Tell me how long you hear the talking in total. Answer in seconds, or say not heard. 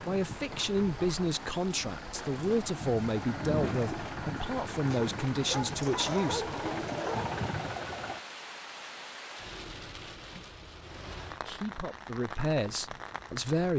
9 s.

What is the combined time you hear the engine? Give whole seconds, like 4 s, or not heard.
8 s.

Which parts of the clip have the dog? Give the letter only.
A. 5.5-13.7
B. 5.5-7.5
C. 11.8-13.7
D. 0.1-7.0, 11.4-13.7
B.